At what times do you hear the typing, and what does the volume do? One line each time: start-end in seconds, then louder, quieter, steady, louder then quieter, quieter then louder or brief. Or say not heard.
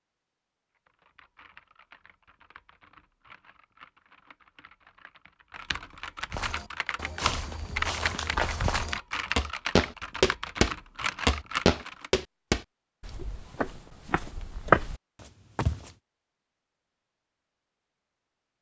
0.8-12.1 louder.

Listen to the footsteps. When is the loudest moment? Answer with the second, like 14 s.
15 s.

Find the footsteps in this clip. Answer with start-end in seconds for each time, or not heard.
6.3-15.9.